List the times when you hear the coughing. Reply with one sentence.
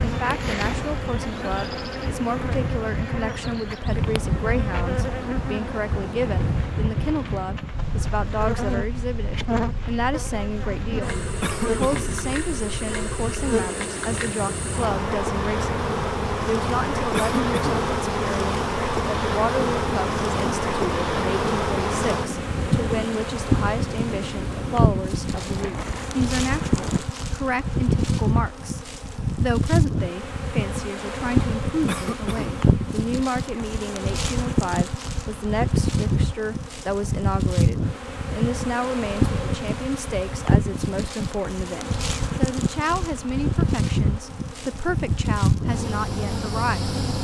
The coughing can be heard from 11.4 to 12.2 s, from 17.1 to 17.9 s and from 31.9 to 32.7 s.